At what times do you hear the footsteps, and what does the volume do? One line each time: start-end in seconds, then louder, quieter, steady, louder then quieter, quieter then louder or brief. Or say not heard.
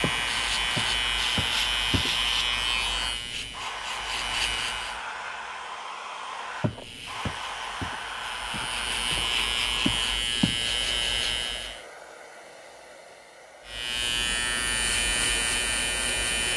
0.0-2.1 brief
6.6-10.7 quieter then louder.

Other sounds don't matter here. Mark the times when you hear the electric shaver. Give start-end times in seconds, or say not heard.
0.0-5.0, 6.5-11.8, 13.7-16.5.